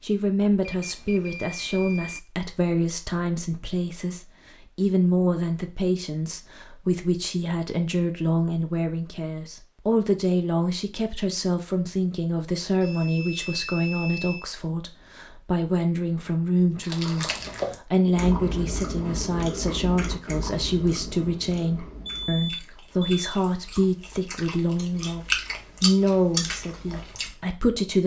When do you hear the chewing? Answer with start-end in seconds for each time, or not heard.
16.8-27.3.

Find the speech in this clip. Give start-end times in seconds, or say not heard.
0.0-17.2, 17.9-28.0.